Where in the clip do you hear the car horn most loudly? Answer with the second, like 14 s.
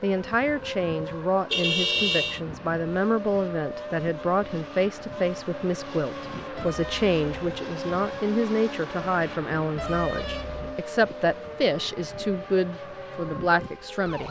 2 s.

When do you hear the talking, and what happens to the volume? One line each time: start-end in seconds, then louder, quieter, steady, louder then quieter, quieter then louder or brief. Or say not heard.
0.0-14.2 steady.